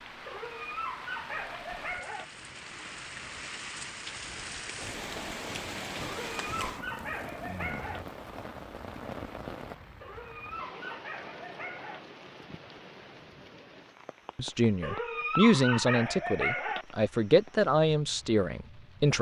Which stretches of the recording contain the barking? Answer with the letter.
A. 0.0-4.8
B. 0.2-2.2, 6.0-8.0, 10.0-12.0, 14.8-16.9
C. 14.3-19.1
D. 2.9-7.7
B.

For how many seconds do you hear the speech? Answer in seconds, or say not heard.
5 s.